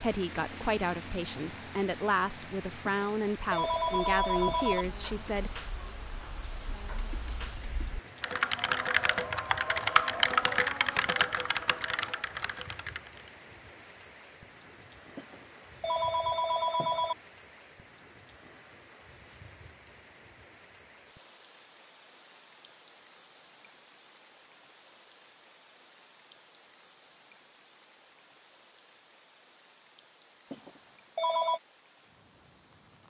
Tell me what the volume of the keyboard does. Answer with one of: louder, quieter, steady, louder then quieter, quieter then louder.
louder then quieter.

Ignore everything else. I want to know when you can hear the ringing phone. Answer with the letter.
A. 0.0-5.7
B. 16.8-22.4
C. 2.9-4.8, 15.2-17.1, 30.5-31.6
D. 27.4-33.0
C.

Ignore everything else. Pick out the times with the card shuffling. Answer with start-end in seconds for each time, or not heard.
not heard.